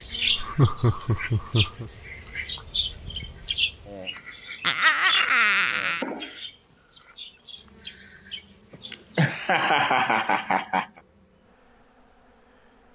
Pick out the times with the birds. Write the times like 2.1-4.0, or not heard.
0.0-9.2.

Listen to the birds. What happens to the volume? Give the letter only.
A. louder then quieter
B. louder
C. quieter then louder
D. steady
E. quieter
A.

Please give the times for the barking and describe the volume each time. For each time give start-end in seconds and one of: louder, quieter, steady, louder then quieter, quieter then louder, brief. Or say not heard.
not heard.